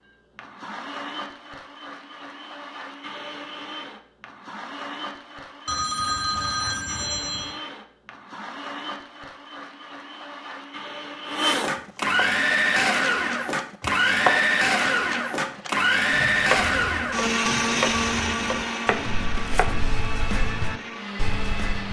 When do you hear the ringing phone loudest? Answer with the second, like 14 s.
6 s.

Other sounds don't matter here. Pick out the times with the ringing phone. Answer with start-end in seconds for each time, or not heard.
5.7-7.6.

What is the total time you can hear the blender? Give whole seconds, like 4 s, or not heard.
22 s.